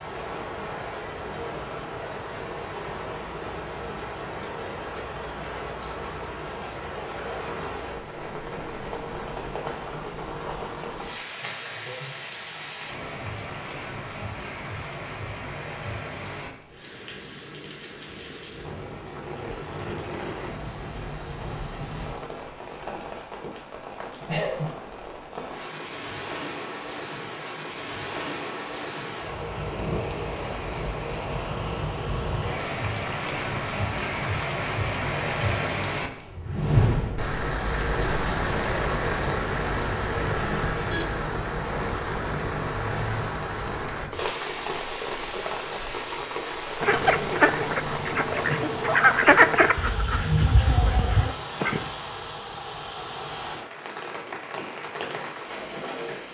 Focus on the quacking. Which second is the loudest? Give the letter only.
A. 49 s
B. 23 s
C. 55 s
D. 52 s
A.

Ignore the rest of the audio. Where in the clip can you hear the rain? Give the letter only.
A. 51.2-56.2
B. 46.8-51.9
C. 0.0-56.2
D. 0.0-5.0
C.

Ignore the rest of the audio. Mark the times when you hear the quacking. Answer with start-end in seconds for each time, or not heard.
46.8-51.9.